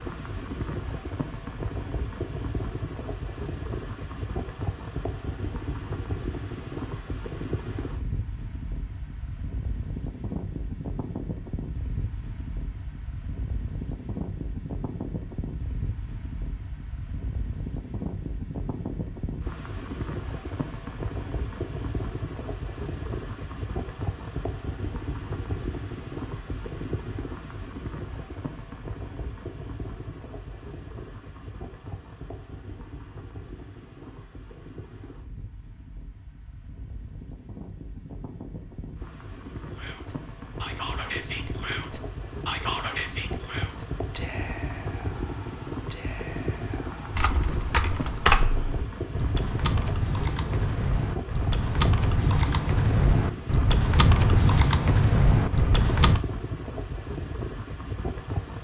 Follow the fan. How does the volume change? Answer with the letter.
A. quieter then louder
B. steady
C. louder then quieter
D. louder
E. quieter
B.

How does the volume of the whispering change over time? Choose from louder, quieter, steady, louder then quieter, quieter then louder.
quieter.